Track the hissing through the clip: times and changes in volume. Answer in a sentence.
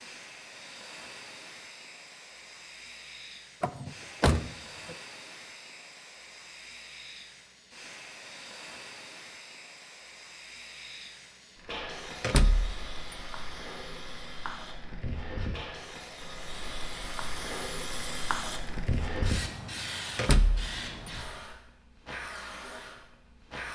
You can hear the hissing from 0.0 to 23.6 s, getting louder.